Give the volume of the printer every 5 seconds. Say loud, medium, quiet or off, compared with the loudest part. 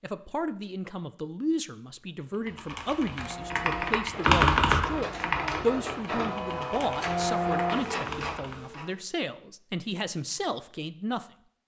medium, loud, off.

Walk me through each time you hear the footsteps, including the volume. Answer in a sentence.
The footsteps can't be heard in this clip.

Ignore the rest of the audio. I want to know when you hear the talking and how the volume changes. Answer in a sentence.
You can hear the talking from 0.0 to 11.2 s, at a steady volume.